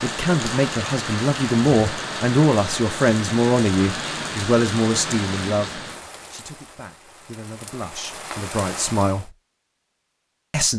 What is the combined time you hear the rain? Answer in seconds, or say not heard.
9 s.